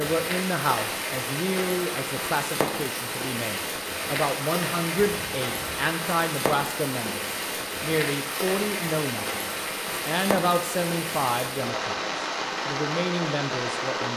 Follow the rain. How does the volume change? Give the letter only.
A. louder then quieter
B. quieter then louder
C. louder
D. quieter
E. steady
E.